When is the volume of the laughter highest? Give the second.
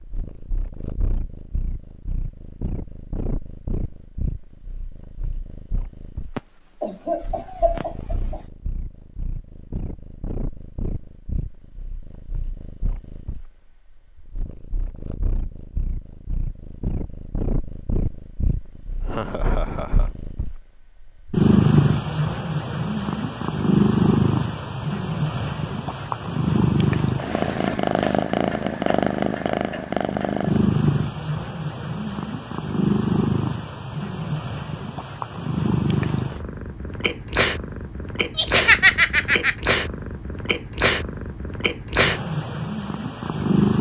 39 s.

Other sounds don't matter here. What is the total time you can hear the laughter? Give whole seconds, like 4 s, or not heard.
4 s.